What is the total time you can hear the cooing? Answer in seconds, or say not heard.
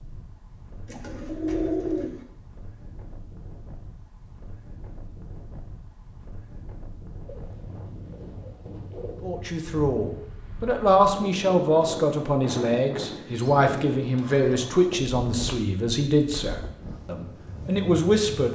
5 s.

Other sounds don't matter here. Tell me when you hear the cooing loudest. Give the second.
2 s.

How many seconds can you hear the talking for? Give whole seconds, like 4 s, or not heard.
9 s.